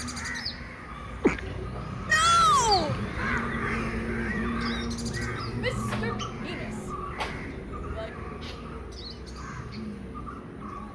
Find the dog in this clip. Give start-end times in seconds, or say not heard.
not heard.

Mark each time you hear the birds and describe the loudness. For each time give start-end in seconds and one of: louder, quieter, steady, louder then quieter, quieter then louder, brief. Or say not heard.
0.0-10.9 quieter.